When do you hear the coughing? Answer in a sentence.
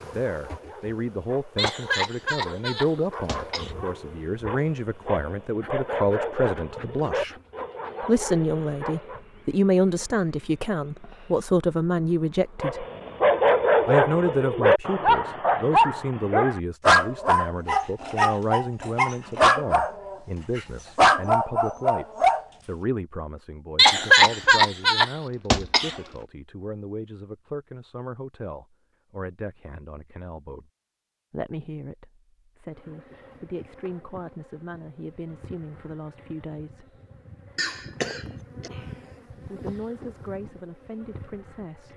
The coughing can be heard from 1.6 to 3.8 s, from 23.8 to 26.0 s and from 37.5 to 38.7 s.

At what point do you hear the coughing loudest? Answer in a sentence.
The loudest moment of the coughing is at 24 seconds.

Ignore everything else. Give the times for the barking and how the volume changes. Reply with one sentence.
The barking can be heard from 0.0 to 9.2 s, getting louder; and from 12.6 to 22.4 s, at a steady volume.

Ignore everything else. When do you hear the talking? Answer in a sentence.
The talking can be heard from 0.0 to 7.3 s, from 8.0 to 12.8 s, from 13.8 to 30.7 s, from 31.3 to 36.9 s and from 39.3 to 41.9 s.